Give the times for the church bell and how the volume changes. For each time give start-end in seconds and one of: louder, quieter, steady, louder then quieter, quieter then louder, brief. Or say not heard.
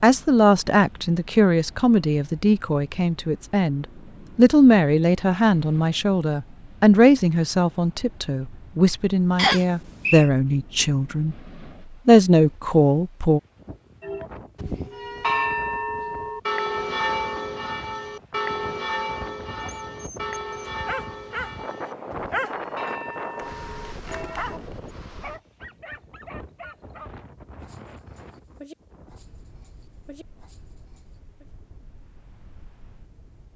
14.0-24.6 quieter.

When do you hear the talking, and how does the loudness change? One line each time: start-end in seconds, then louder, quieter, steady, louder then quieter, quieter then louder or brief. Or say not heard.
0.0-11.3 steady
12.1-13.4 brief.